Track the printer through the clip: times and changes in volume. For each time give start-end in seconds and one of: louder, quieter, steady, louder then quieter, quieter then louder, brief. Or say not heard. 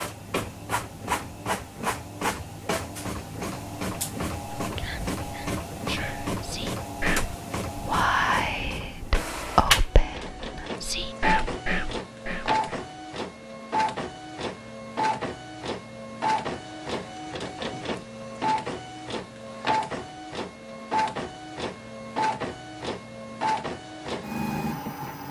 0.0-25.2 steady.